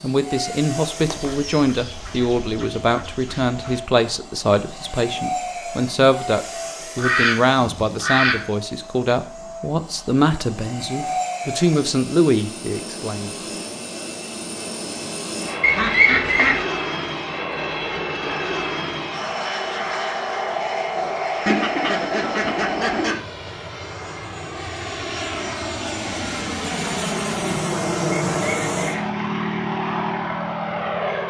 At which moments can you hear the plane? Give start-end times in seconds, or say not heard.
0.0-31.2.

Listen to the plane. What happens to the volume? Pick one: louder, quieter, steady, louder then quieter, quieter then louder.
louder.